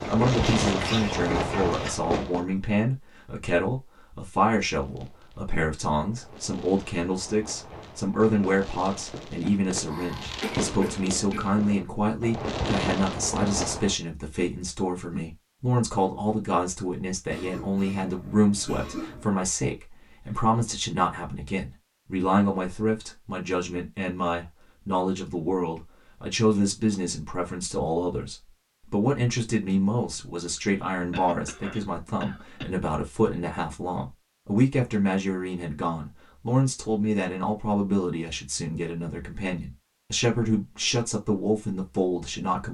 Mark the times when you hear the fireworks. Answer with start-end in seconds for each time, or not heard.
0.0-2.5, 4.7-14.0.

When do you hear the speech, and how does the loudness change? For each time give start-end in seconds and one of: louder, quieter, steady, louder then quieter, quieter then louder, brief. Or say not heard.
0.1-42.6 steady.